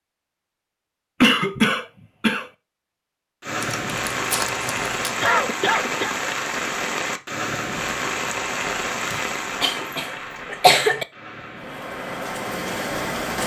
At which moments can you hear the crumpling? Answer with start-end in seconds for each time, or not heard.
3.6-5.2.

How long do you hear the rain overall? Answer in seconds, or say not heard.
10 s.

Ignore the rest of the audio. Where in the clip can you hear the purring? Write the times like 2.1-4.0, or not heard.
not heard.